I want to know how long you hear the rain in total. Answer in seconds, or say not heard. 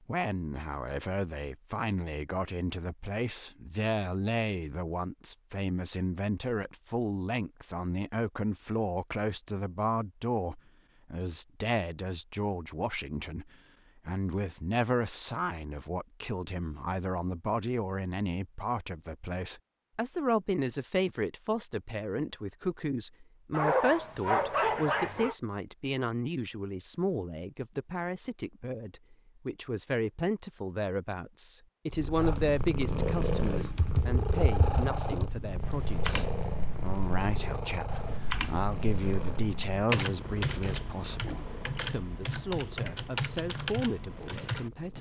not heard.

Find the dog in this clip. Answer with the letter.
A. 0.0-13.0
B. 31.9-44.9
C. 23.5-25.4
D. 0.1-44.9
C.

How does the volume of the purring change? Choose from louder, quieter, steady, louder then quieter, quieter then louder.
quieter.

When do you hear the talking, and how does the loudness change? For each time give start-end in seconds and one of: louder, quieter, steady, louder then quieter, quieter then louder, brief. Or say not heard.
0.1-44.9 steady.